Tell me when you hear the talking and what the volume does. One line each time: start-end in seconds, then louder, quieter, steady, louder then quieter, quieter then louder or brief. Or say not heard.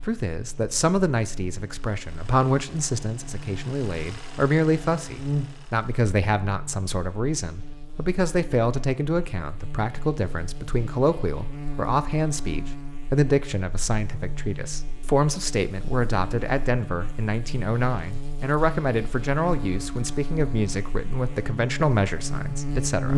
0.0-23.1 steady.